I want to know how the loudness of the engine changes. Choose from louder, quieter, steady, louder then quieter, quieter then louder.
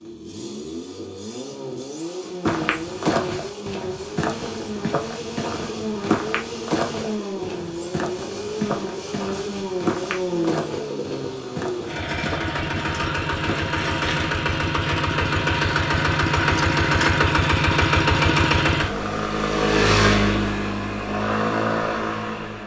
louder.